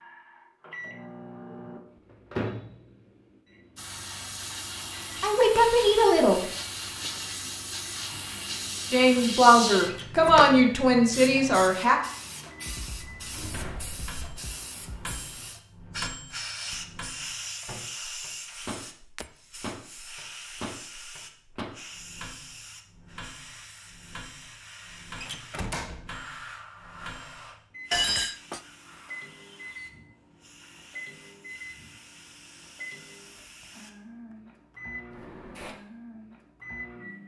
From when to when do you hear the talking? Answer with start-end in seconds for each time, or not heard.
5.2-6.4, 8.9-12.0.